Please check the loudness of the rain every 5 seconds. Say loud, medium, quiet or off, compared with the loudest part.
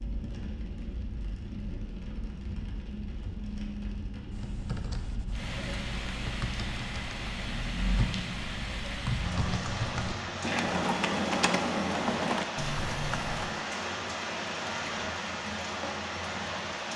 medium, loud, loud, loud.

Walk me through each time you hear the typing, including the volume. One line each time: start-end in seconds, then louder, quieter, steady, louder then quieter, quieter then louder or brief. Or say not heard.
4.3-13.5 louder.